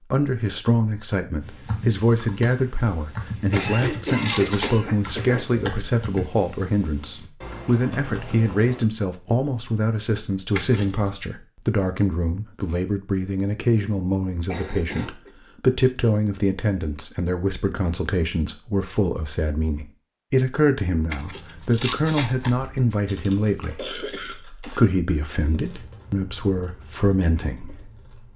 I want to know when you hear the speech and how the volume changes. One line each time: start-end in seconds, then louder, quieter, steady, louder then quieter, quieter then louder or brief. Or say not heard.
0.1-28.0 steady.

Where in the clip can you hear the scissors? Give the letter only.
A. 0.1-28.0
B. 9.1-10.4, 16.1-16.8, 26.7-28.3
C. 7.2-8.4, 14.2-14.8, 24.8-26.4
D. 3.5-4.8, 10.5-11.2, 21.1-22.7
D.